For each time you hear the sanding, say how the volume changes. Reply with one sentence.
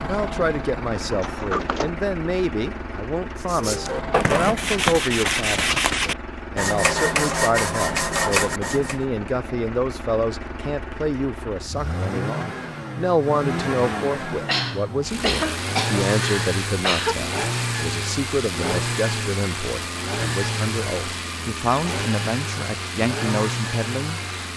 You can hear the sanding from 3.4 to 9.0 s, at a steady volume.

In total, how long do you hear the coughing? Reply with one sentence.
The coughing can be heard for 3 seconds in total.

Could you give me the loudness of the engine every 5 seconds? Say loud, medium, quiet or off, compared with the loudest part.
medium, medium, loud, loud, loud.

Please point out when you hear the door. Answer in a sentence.
The door can be heard from 1.1 to 1.9 s.